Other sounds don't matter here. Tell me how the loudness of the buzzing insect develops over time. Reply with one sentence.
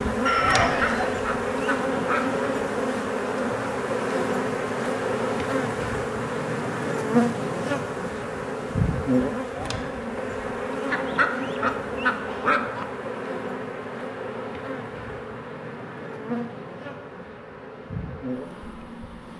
The loudness of the buzzing insect goes down.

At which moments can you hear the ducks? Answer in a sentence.
The ducks can be heard from 0.7 to 2.4 s and from 10.8 to 12.8 s.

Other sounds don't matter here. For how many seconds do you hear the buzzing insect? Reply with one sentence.
You can hear the buzzing insect for 19 seconds altogether.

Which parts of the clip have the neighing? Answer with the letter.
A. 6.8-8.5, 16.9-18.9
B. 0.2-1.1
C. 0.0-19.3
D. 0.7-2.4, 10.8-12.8
B.